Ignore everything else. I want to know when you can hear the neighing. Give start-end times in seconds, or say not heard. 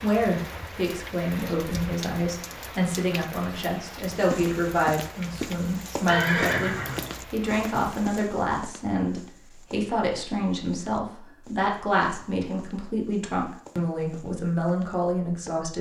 6.0-7.1.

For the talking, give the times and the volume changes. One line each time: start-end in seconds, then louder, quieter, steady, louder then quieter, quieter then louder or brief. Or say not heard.
0.0-15.7 steady.